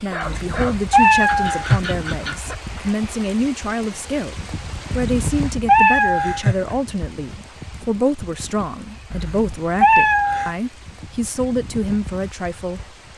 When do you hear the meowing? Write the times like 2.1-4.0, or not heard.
0.2-2.0, 5.2-6.8, 9.1-10.6.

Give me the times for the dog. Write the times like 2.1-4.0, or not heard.
0.0-2.5.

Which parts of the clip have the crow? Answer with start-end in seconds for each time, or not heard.
not heard.